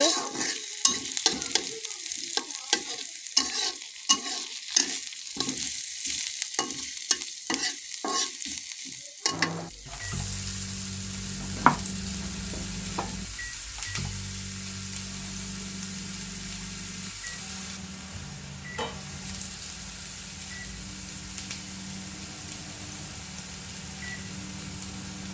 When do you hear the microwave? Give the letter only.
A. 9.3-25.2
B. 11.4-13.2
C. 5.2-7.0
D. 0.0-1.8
A.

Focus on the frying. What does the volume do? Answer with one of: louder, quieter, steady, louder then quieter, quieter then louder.
quieter.